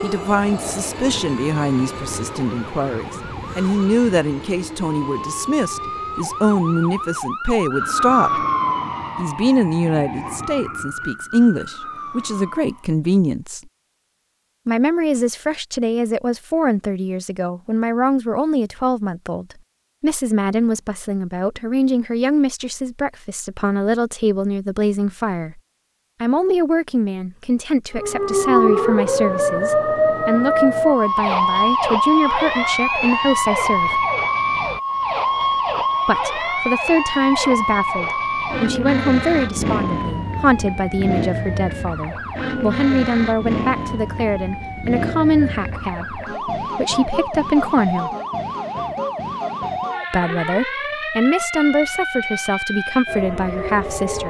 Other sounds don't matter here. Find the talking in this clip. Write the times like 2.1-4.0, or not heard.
0.0-8.4, 9.2-13.6, 14.7-25.6, 26.2-34.0, 36.0-48.1, 50.1-54.2.